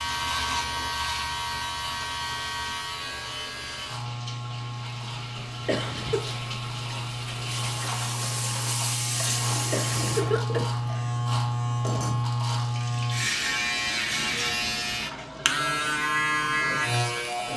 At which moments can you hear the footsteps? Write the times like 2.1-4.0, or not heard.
not heard.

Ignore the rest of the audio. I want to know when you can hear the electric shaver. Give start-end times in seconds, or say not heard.
0.0-17.5.